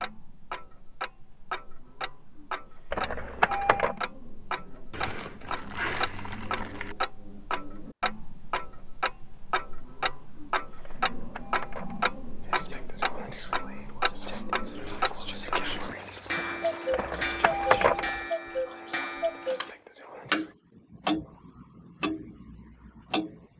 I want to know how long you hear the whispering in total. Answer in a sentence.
The whispering can be heard for 8 seconds in total.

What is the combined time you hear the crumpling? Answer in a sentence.
You can hear the crumpling for 4 seconds altogether.